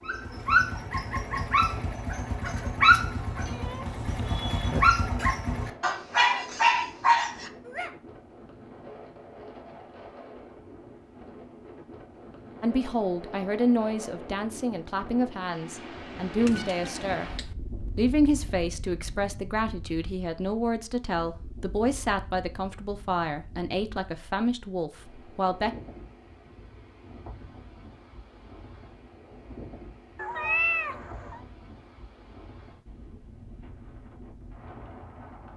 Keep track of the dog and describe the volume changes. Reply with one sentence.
The loudness of the dog goes down, then up.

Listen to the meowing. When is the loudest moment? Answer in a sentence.
The volume of the meowing peaks at 31 seconds.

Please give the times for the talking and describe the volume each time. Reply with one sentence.
The talking can be heard from 12.6 to 17.3 s, getting quieter then louder; and from 17.9 to 25.7 s, at a steady volume.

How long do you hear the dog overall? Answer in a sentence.
The dog can be heard for 8 seconds in total.